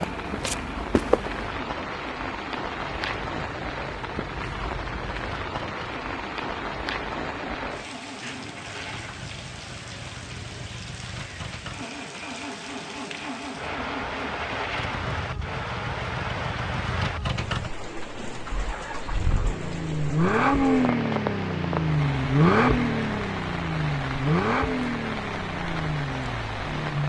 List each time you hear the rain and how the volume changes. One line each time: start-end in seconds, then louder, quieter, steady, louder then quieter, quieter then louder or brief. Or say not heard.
0.0-27.0 steady.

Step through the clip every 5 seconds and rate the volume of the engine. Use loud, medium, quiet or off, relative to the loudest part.
quiet, quiet, quiet, medium, loud, medium.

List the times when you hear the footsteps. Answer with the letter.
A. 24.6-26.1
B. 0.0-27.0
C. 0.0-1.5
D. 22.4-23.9
C.